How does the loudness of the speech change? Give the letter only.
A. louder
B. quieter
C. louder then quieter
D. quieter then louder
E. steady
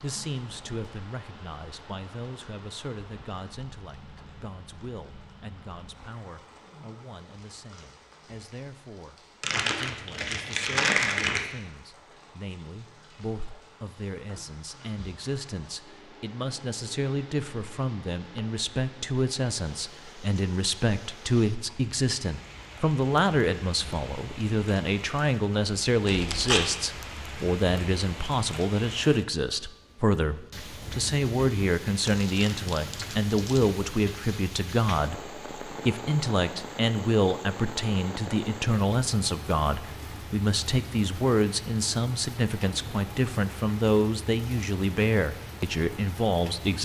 A.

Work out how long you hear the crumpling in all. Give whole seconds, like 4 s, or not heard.
4 s.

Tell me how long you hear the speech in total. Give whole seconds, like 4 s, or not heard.
47 s.